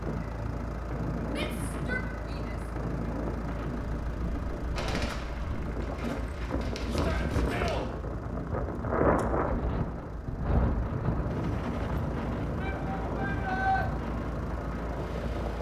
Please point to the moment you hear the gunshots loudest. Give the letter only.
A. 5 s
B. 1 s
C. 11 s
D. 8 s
A.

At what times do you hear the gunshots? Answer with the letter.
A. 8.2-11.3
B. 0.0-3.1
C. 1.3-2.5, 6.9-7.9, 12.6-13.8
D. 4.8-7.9
D.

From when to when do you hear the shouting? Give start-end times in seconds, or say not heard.
1.3-2.5, 6.9-7.9, 12.6-13.8.